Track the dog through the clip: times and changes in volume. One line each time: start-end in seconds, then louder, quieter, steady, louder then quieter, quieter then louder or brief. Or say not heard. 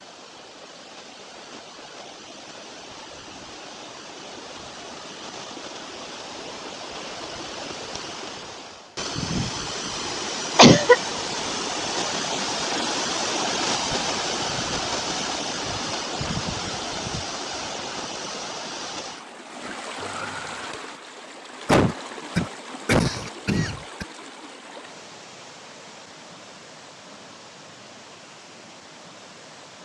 not heard.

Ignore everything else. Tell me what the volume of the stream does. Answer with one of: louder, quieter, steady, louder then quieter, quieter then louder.
louder then quieter.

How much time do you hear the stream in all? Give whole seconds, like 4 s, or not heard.
30 s.